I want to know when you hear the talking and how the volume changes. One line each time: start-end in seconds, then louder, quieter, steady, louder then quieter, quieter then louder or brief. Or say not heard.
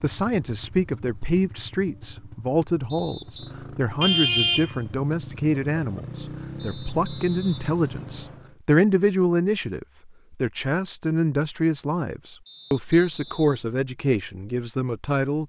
0.0-15.4 steady.